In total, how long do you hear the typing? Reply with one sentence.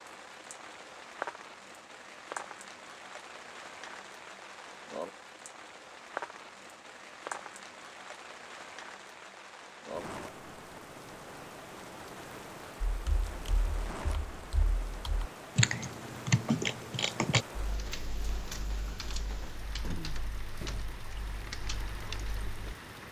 You can hear the typing for 10 seconds altogether.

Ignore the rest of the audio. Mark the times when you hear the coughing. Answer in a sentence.
The coughing can't be heard in this clip.